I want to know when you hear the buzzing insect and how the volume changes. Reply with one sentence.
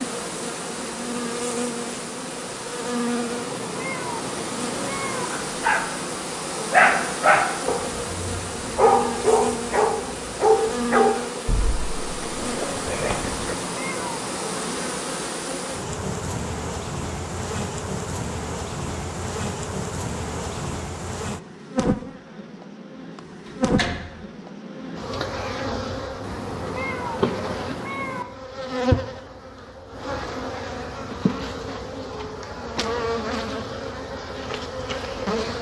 The buzzing insect can be heard from 0.0 to 35.5 s, at a steady volume.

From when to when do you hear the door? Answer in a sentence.
The door can be heard from 23.2 to 24.1 s.